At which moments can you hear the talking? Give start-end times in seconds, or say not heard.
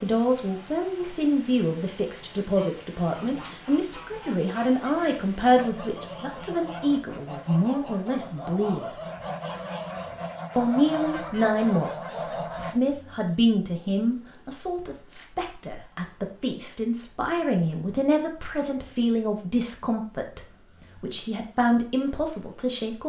0.0-9.0, 10.6-23.0.